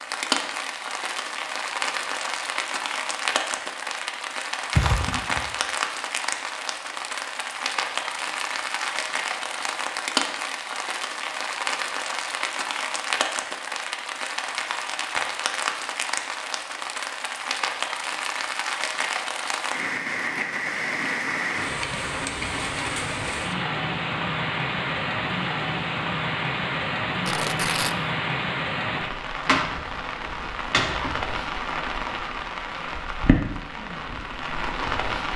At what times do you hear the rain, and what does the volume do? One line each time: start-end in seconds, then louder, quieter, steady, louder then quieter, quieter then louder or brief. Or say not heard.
0.0-35.3 steady.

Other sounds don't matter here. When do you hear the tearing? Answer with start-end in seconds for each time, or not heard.
4.8-5.5, 27.2-27.9.